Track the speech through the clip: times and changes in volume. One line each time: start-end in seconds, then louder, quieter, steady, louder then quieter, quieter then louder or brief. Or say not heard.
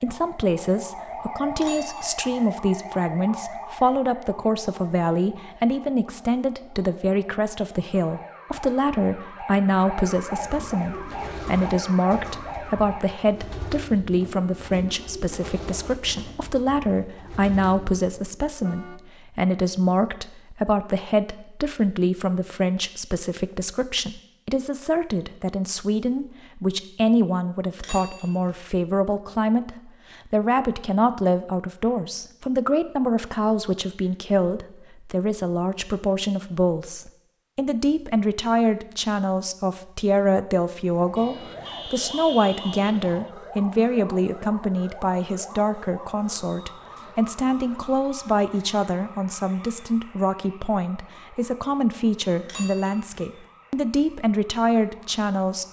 0.0-55.6 steady.